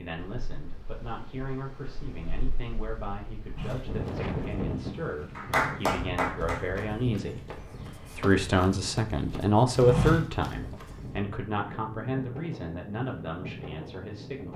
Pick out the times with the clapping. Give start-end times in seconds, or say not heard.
5.3-6.8.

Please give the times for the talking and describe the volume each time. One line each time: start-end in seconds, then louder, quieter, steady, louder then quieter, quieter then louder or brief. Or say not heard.
0.0-14.5 louder then quieter.